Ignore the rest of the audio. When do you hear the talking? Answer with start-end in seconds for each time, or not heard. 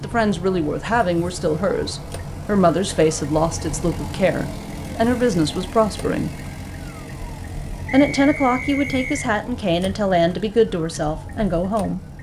0.0-6.4, 7.9-12.0.